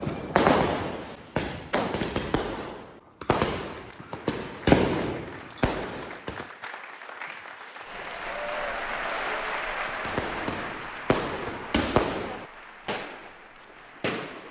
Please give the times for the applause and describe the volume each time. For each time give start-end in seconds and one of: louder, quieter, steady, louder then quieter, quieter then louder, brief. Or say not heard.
3.6-14.4 louder then quieter.